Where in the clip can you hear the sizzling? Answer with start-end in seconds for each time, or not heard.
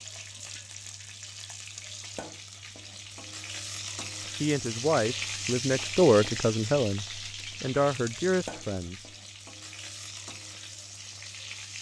0.0-11.7.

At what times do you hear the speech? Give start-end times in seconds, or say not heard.
4.4-9.1.